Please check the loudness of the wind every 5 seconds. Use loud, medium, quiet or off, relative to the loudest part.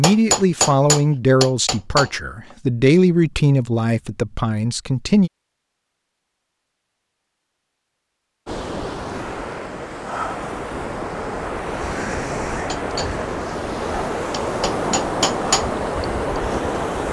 off, medium, loud, loud.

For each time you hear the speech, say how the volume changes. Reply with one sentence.
The speech can be heard from 0.0 to 5.3 s, getting quieter.